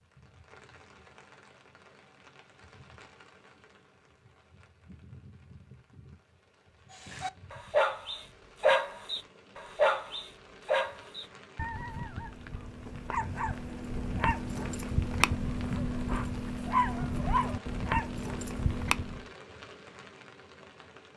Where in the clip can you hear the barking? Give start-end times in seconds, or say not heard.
7.0-19.2.